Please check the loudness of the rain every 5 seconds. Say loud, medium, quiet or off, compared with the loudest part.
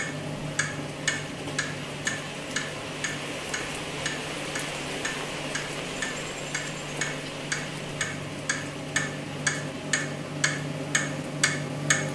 loud, loud, medium.